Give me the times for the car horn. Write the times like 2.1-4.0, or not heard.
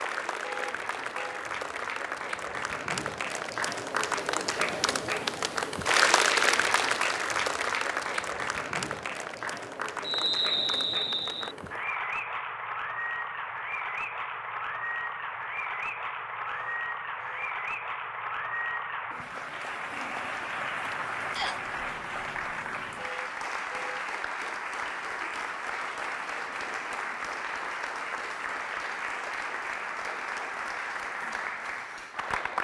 0.4-1.4, 16.4-17.5, 22.9-24.1.